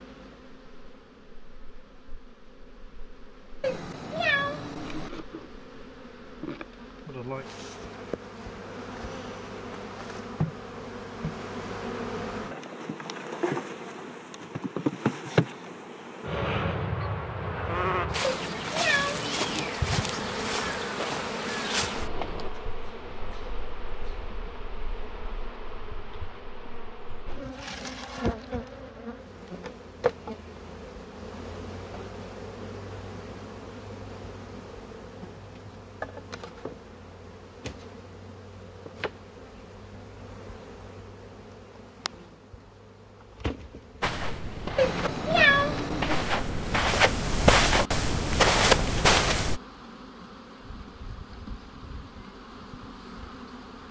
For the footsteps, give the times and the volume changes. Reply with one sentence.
The footsteps can be heard from 44.0 to 49.6 s, getting louder.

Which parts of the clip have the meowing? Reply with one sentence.
You can hear the meowing from 3.6 to 5.1 s, from 18.2 to 19.7 s and from 44.8 to 46.2 s.